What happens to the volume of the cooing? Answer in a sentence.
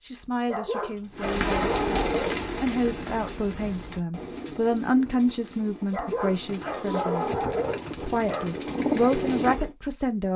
The loudness of the cooing goes down, then up.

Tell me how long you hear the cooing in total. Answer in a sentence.
You can hear the cooing for 9 seconds altogether.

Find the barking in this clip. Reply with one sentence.
The barking can be heard from 0.5 to 2.5 s and from 5.9 to 8.6 s.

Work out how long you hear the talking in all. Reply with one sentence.
The talking can be heard for 10 seconds in total.